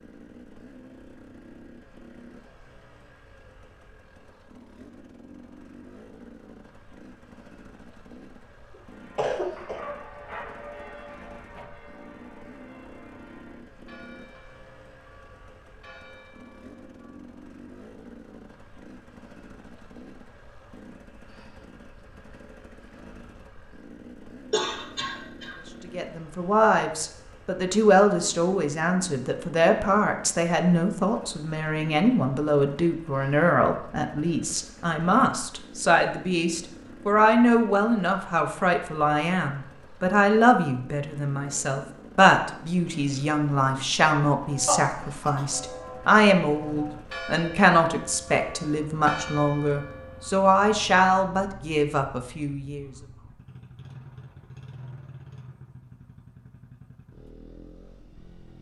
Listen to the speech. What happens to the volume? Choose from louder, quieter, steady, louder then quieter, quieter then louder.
steady.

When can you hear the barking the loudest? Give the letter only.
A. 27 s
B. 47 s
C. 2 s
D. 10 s
D.